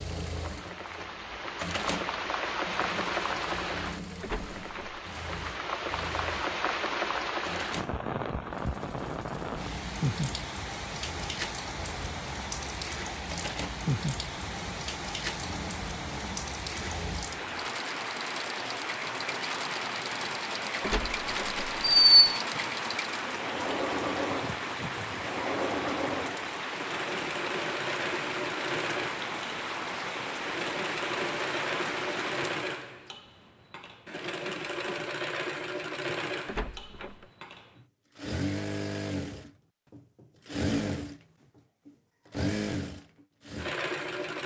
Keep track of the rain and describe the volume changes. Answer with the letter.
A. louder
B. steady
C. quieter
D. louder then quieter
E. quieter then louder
B.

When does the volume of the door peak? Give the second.
22 s.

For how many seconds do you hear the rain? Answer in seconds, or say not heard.
33 s.